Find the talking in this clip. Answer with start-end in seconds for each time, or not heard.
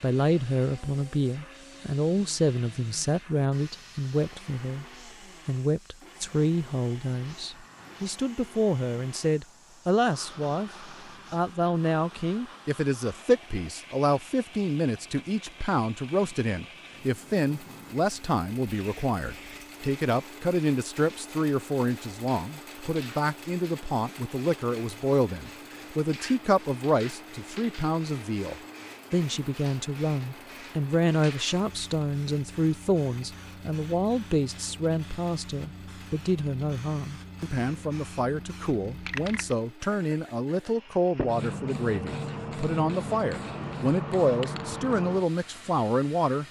0.0-4.8, 5.5-46.4.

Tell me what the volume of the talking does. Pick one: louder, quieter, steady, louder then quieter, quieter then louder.
steady.